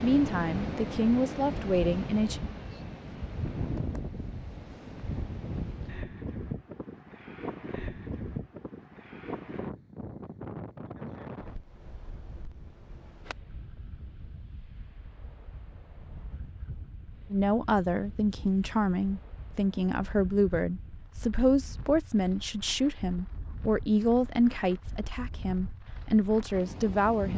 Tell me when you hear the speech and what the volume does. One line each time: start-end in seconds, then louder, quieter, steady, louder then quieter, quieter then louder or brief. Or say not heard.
0.0-2.4 brief
17.3-27.3 steady.